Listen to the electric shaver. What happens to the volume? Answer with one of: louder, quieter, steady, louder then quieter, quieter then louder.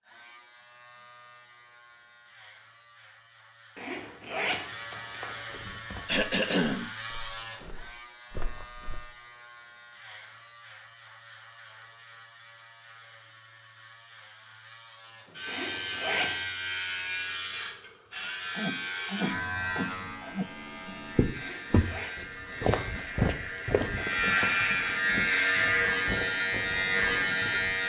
louder.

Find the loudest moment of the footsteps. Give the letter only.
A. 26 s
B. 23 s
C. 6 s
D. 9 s
B.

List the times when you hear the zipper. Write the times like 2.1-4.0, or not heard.
3.8-5.4, 15.4-16.4, 21.4-22.1.